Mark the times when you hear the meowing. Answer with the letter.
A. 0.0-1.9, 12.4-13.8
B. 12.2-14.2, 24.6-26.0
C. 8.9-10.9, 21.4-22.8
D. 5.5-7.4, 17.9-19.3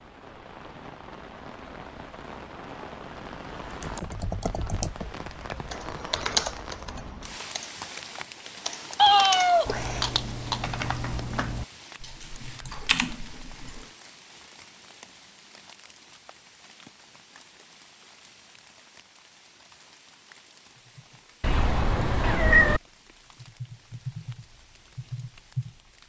C.